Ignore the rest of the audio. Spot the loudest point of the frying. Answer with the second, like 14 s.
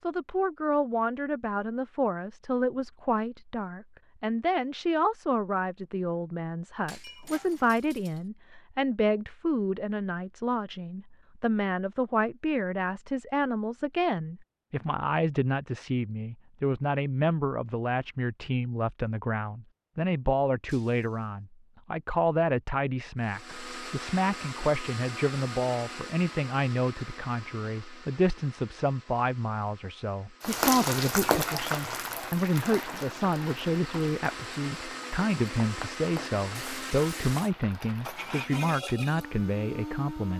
31 s.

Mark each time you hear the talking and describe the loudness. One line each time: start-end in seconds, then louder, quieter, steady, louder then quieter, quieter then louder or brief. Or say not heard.
0.0-40.3 steady.